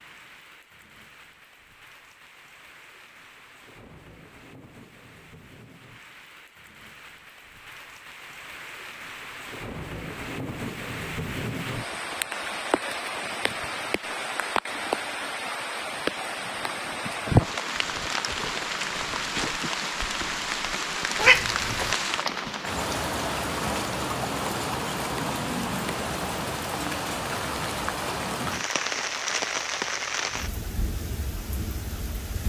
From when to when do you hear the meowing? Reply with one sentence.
You can hear the meowing from 21.2 to 21.9 s.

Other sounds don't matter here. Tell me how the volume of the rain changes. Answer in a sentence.
The volume of the rain goes up.